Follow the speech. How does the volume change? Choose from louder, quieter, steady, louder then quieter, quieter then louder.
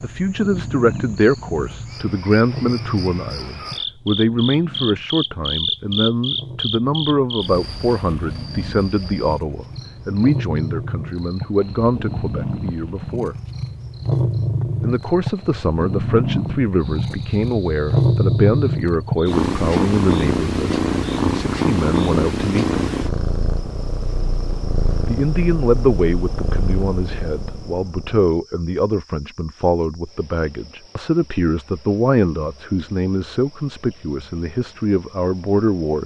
steady.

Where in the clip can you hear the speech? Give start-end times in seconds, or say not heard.
0.0-13.3, 14.8-22.8, 25.1-36.0.